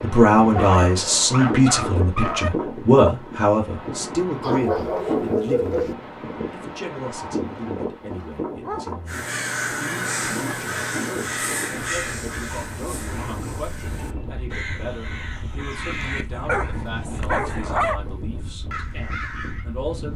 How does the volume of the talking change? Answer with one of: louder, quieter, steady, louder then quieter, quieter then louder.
quieter.